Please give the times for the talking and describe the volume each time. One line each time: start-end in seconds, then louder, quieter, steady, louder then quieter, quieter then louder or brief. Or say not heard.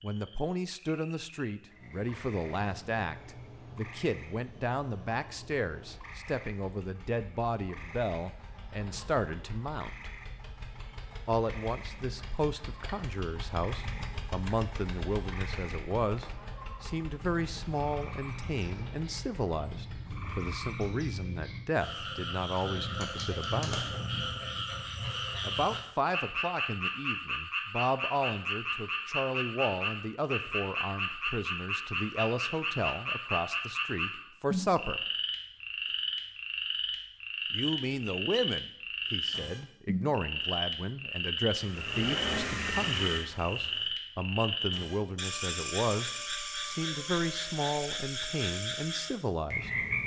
0.0-10.1 steady
11.2-23.9 steady
25.4-35.0 steady
37.5-49.8 steady.